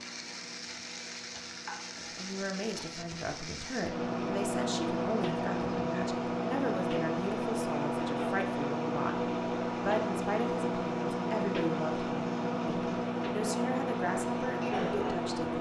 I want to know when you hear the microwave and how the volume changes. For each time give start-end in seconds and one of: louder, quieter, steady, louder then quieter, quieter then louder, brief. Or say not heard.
0.0-15.5 louder.